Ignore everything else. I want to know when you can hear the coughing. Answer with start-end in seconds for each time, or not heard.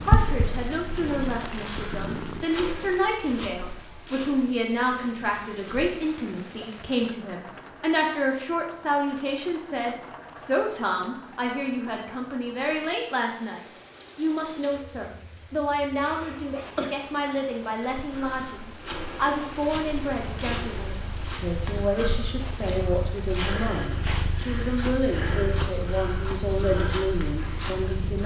16.0-16.9.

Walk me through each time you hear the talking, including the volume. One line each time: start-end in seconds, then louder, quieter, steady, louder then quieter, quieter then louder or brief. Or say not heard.
0.0-28.2 steady.